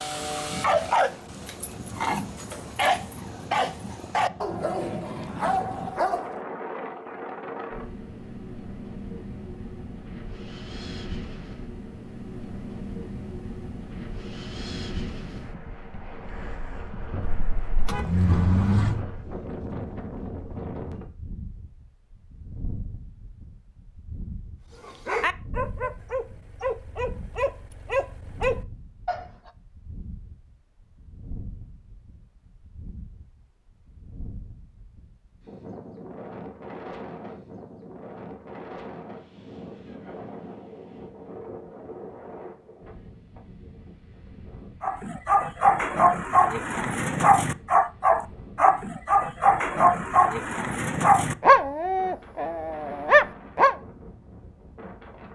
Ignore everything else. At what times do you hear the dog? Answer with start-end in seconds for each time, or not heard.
0.0-6.4, 24.7-29.5, 44.8-53.8.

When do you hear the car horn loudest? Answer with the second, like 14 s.
19 s.